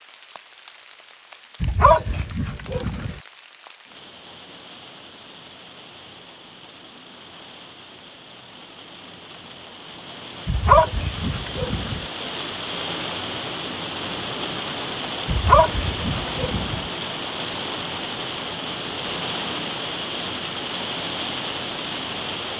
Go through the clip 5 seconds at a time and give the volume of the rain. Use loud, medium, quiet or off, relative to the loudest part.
quiet, quiet, loud, loud, loud.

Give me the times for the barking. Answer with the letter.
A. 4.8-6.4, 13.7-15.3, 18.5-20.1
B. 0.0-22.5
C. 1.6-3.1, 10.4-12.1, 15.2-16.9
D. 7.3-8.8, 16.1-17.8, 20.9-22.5
C.